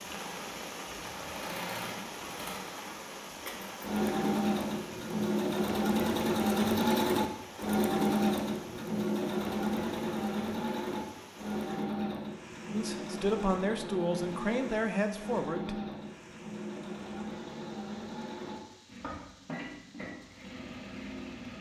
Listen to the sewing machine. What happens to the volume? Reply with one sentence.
The loudness of the sewing machine goes up, then down.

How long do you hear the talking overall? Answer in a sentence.
You can hear the talking for 3 seconds altogether.